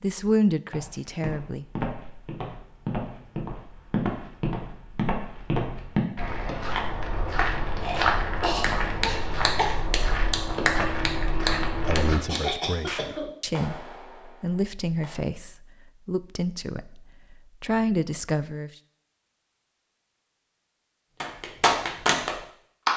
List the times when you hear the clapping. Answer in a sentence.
You can hear the clapping from 8.6 to 15.2 s and from 21.2 to 22.9 s.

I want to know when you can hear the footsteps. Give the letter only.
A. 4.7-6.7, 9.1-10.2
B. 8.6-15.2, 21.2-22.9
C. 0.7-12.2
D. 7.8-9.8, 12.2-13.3
C.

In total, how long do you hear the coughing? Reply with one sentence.
The coughing can be heard for 3 seconds in total.